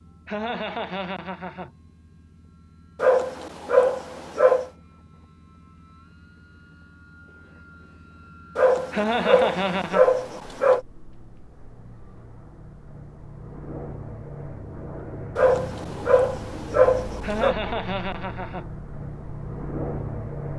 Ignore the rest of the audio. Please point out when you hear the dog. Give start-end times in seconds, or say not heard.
3.0-4.7, 8.6-10.8, 15.3-17.6.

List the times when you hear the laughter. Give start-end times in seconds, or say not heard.
0.2-1.7, 8.9-10.1, 17.2-18.6.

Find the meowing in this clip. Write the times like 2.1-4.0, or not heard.
not heard.